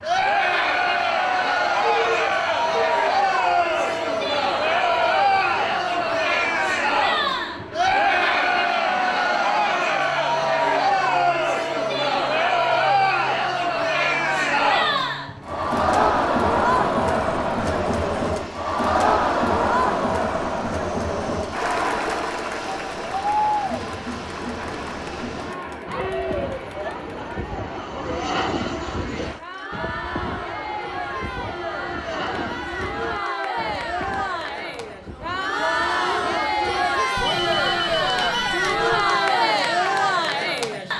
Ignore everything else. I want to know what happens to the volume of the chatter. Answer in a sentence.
The loudness of the chatter goes down, then up.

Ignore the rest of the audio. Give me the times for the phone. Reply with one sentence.
You can hear the phone from 1.8 to 3.0 s and from 37.1 to 39.2 s.